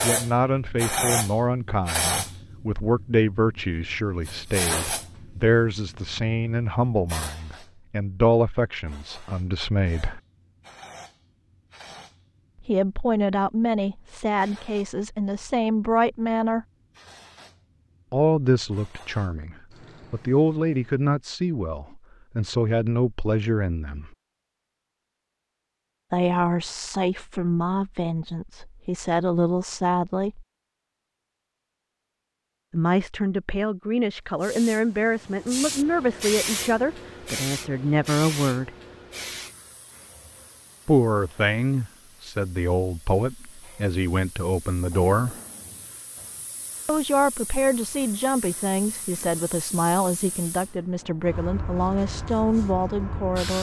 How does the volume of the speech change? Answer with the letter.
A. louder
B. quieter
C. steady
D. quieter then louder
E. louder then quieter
C.